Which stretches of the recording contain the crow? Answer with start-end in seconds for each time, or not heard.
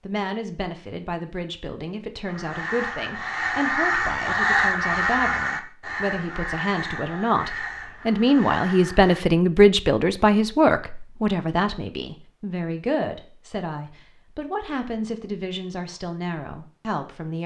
2.2-9.2.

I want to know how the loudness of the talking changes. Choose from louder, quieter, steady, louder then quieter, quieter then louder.
louder then quieter.